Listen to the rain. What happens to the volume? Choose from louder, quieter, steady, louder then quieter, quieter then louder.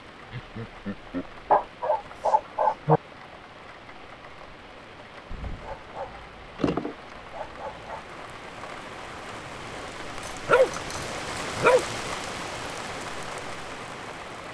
louder.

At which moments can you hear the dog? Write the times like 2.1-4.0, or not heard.
1.5-3.0, 5.3-8.0, 10.2-11.8.